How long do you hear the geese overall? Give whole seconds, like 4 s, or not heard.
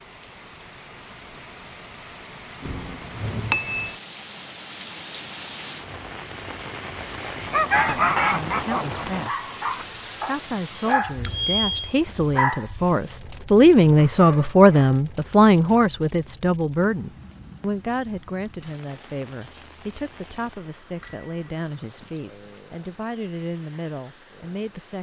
2 s.